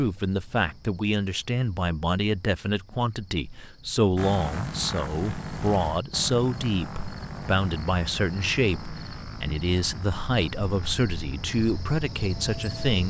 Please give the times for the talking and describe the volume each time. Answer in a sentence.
The talking can be heard from 0.0 to 13.0 s, at a steady volume.